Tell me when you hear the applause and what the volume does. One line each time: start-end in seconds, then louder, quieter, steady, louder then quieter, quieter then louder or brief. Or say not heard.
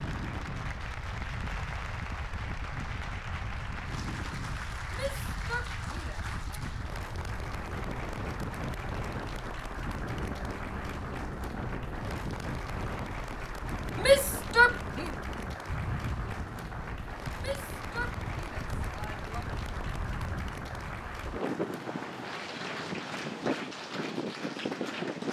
0.0-25.2 steady.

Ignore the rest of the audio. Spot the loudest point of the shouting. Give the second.
14 s.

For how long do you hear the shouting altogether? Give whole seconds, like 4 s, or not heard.
5 s.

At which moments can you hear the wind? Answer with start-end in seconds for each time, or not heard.
0.0-25.2.